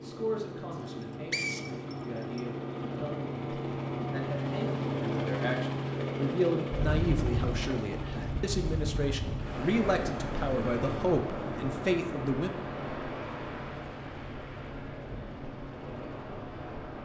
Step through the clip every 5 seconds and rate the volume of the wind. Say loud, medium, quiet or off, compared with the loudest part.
off, loud, loud, medium.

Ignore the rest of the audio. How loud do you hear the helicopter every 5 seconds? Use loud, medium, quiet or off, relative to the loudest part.
loud, loud, medium, quiet.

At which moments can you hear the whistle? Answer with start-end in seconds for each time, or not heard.
0.8-2.4.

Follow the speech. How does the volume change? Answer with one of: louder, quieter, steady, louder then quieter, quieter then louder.
louder.